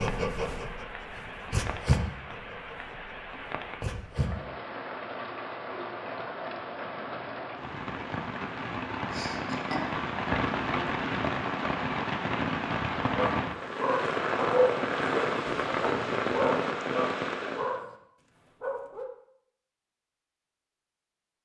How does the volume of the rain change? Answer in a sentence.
The volume of the rain goes up.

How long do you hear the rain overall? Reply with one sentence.
You can hear the rain for 18 seconds altogether.